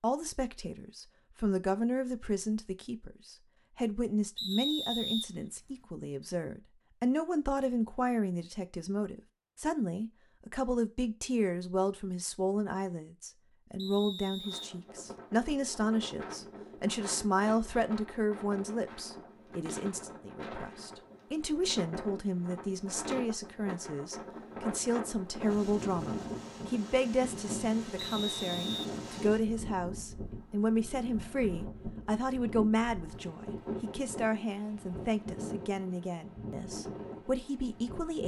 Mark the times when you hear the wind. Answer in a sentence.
The wind can be heard from 14.4 to 38.2 s.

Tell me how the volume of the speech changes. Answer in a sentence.
The volume of the speech stays about the same.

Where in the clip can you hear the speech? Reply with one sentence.
You can hear the speech from 0.0 to 38.2 s.